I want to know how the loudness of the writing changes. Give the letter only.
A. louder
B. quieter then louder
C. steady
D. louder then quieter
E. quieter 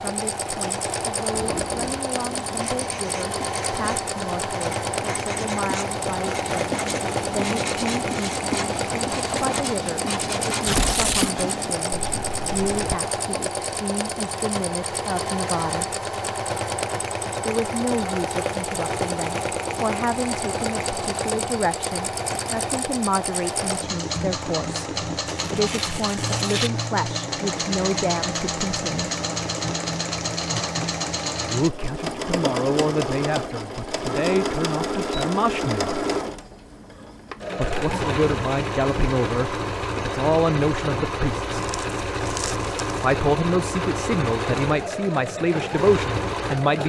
A.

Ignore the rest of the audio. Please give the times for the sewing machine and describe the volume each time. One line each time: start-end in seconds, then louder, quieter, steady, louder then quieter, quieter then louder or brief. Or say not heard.
0.0-46.8 steady.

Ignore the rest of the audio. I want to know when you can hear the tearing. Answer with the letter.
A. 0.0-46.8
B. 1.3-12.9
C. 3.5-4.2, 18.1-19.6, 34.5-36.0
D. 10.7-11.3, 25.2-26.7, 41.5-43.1
D.